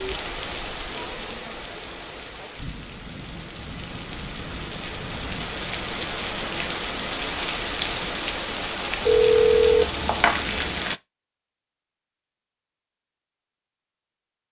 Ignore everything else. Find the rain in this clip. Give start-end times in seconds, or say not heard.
0.0-11.0.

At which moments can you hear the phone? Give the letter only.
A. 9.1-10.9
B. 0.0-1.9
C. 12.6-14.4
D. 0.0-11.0
A.